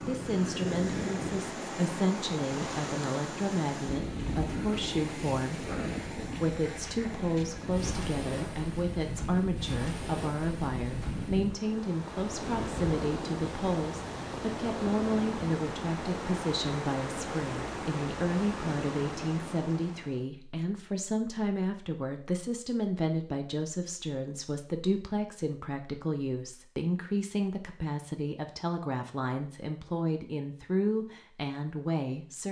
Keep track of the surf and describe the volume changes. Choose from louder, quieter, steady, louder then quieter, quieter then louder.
steady.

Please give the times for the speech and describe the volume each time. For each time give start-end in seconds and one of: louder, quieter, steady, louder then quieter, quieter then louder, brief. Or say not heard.
0.1-32.4 steady.